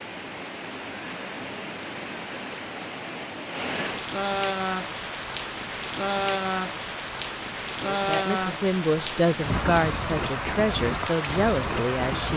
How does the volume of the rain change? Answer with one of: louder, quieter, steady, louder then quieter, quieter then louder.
louder.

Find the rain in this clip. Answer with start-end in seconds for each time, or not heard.
0.0-12.3.